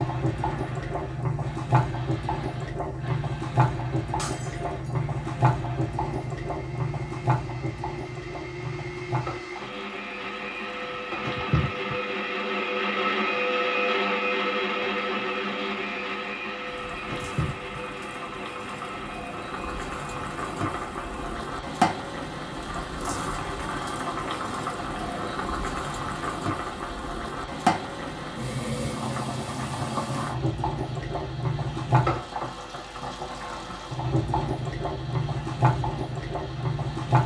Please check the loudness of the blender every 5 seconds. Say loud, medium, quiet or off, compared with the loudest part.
quiet, quiet, loud, medium, quiet, quiet, quiet, quiet.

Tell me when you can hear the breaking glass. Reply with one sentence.
You can hear the breaking glass from 4.2 to 5.0 s.